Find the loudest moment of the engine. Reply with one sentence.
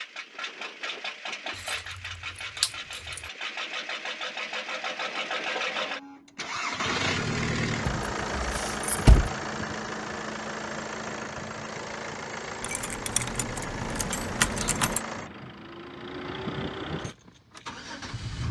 The volume of the engine peaks at 7 seconds.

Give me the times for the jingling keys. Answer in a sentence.
You can hear the jingling keys from 1.6 to 3.3 s, from 7.8 to 9.3 s and from 12.6 to 15.0 s.